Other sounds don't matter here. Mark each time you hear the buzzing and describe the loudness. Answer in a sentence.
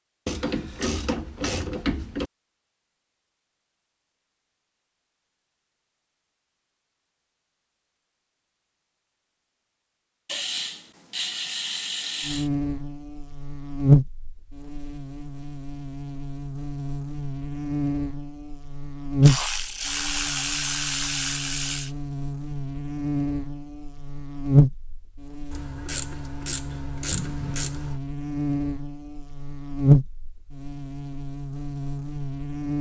You can hear the buzzing from 12.2 to 32.7 s, getting quieter then louder.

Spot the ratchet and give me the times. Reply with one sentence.
The ratchet can be heard from 0.2 to 2.3 s, from 10.2 to 12.5 s, from 19.2 to 21.9 s and from 25.5 to 28.0 s.